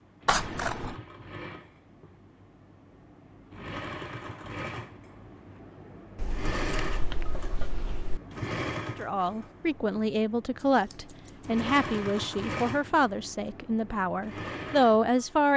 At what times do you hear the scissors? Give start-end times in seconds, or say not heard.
0.2-0.9, 6.2-8.2, 10.6-11.7.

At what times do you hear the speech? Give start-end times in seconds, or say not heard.
8.9-15.5.